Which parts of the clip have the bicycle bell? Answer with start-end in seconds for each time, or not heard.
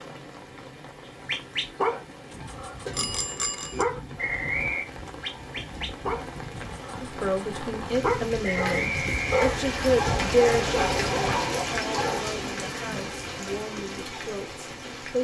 2.9-3.9.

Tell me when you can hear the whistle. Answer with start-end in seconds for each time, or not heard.
4.2-4.8, 8.4-9.9.